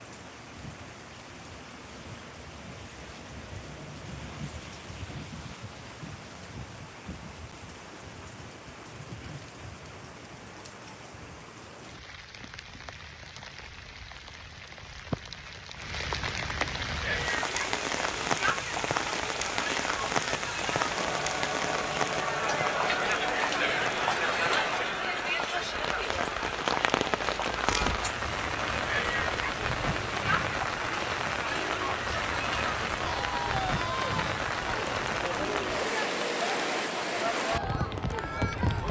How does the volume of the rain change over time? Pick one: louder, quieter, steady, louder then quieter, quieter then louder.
louder.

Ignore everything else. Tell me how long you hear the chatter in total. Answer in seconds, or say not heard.
22 s.